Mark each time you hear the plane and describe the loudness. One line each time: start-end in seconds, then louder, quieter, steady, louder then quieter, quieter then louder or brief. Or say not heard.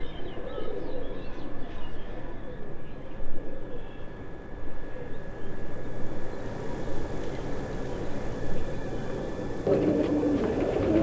0.0-10.9 louder.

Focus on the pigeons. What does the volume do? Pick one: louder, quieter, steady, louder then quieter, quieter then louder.
quieter then louder.